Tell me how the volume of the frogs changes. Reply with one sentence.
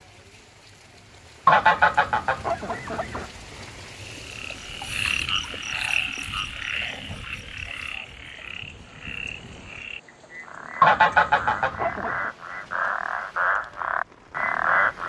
The loudness of the frogs goes down, then up.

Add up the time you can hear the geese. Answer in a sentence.
You can hear the geese for 3 seconds altogether.